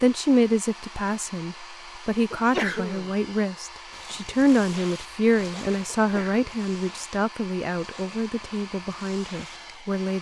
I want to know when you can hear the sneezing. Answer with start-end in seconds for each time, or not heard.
2.3-3.1, 6.0-6.5.